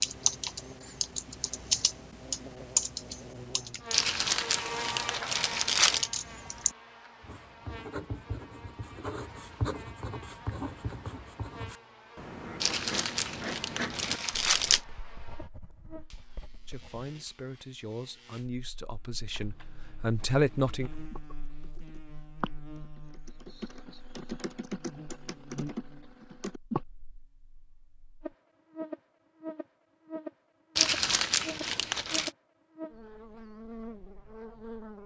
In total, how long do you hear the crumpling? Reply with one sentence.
You can hear the crumpling for 6 seconds altogether.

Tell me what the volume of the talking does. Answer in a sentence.
The loudness of the talking goes up.